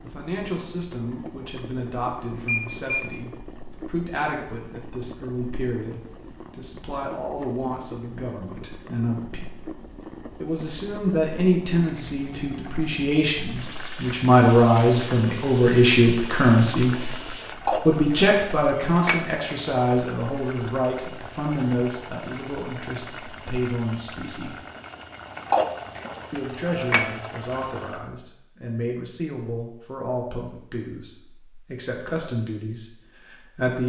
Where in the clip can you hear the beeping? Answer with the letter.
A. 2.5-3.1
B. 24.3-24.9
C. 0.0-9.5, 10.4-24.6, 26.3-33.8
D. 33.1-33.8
A.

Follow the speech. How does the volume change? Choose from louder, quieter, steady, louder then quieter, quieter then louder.
louder then quieter.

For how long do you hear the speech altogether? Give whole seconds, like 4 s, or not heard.
31 s.